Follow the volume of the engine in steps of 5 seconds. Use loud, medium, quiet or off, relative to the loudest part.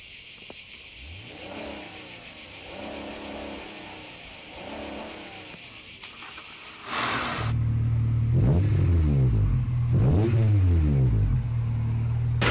quiet, loud, loud.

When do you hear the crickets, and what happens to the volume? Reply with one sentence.
You can hear the crickets from 0.0 to 12.4 s, getting quieter.